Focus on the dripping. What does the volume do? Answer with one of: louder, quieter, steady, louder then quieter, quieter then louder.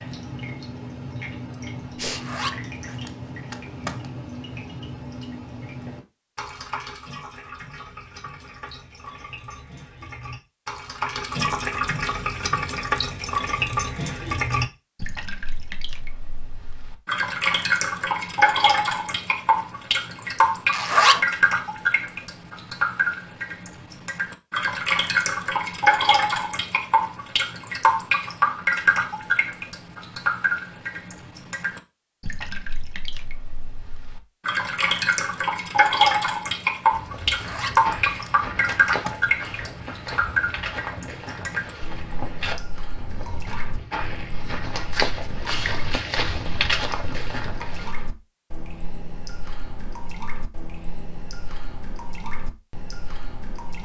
louder then quieter.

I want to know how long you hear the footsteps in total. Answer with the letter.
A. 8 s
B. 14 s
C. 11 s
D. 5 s
C.